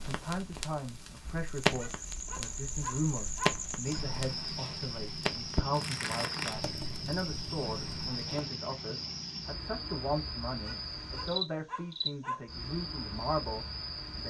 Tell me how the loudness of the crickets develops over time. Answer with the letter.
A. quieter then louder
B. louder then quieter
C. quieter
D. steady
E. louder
D.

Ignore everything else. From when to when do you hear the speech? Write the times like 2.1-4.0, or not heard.
0.0-14.2.